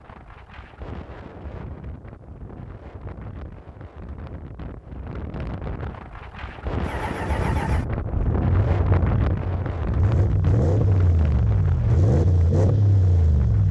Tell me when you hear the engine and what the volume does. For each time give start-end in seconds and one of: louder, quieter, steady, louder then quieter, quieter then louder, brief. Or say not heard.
6.8-13.6 louder.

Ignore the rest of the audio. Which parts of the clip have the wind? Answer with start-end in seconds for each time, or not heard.
0.0-13.6.